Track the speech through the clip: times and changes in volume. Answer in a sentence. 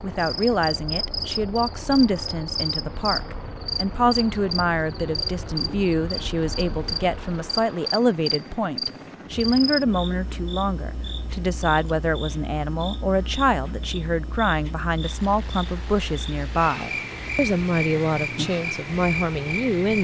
You can hear the speech from 0.0 to 19.9 s, at a steady volume.